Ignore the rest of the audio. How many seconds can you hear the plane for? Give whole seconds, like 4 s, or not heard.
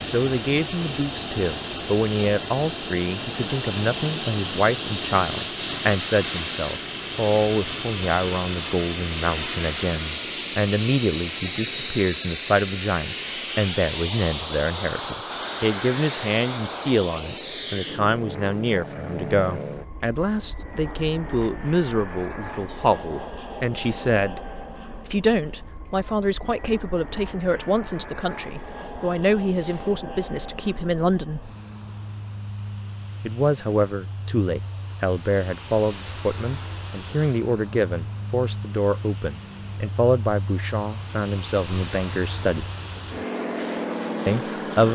45 s.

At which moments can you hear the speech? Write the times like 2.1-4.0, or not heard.
0.0-24.4, 25.1-31.5, 33.2-42.7, 44.2-44.9.